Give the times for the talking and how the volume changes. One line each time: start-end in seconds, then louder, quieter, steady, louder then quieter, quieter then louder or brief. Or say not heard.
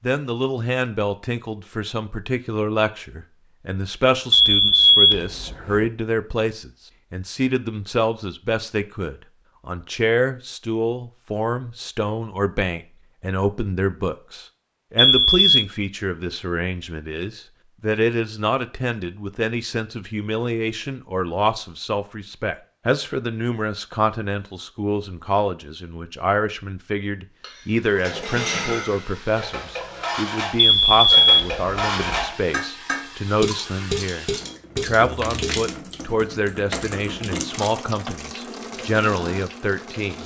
0.0-40.2 steady.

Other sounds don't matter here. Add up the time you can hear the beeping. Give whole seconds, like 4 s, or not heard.
4 s.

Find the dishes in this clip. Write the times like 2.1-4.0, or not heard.
27.4-35.6.